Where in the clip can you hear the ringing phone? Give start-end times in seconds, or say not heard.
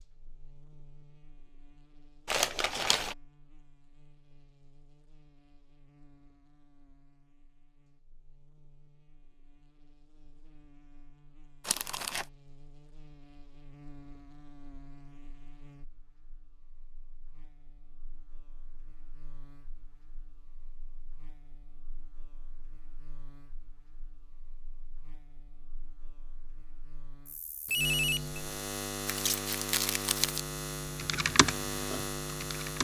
27.6-28.4.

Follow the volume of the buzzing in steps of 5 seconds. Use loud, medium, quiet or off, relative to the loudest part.
quiet, quiet, quiet, quiet, quiet, loud, loud.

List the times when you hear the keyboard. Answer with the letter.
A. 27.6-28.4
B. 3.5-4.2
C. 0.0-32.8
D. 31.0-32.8
D.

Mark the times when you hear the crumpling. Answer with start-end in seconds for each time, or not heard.
2.2-3.1, 11.7-12.2, 29.1-30.4.